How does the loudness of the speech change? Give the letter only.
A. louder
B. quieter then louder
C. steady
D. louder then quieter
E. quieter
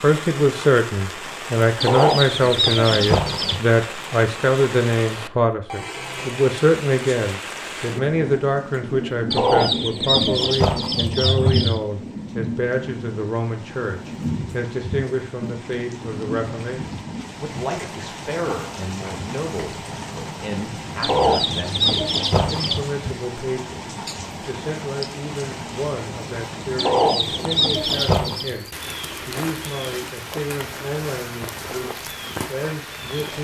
E.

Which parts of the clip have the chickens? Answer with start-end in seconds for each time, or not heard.
1.8-3.6, 9.3-11.8, 21.0-22.8, 26.8-28.6.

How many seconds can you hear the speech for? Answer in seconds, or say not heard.
33 s.